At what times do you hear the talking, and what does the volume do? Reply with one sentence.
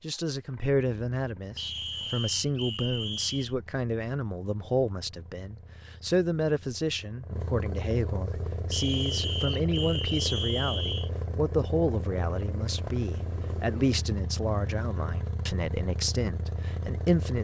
The talking can be heard from 0.0 to 17.3 s, at a steady volume.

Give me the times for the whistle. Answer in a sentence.
You can hear the whistle from 1.6 to 3.5 s and from 8.7 to 11.1 s.